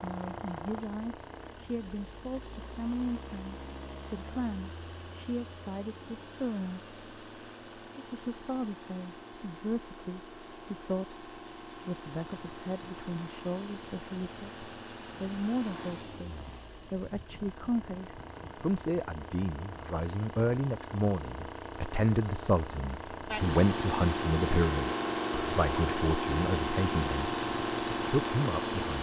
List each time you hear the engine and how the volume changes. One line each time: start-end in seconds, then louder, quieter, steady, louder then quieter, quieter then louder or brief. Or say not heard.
0.0-28.9 louder.